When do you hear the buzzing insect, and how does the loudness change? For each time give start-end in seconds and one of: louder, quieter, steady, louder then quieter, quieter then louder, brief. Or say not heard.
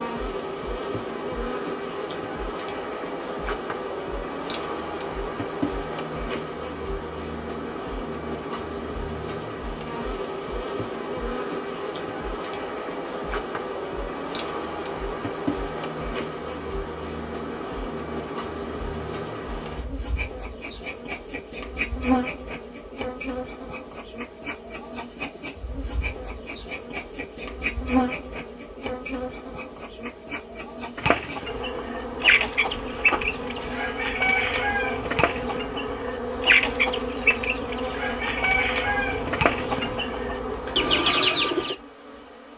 0.0-42.5 steady.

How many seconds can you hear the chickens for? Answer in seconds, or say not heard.
11 s.